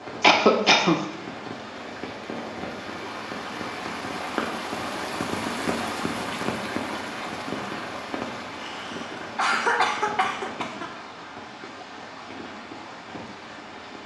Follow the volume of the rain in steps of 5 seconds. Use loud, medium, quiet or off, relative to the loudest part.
loud, loud, medium.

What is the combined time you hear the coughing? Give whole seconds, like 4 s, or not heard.
3 s.